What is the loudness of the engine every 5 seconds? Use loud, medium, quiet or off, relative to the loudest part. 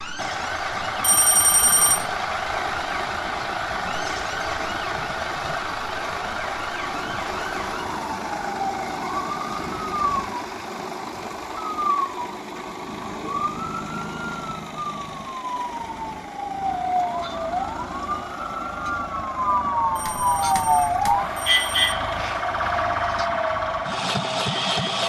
loud, loud, medium, medium, loud.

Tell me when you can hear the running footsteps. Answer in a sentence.
The running footsteps can't be heard in this clip.